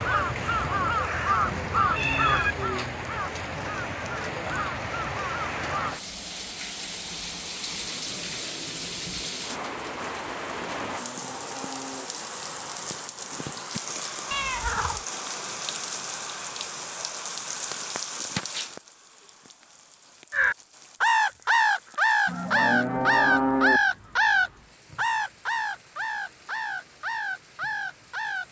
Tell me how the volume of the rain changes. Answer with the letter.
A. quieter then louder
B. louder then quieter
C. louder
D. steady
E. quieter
E.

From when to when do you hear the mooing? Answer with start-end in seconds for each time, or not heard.
10.8-12.1, 22.2-23.8.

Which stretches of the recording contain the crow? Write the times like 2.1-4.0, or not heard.
0.0-6.0, 20.3-28.4.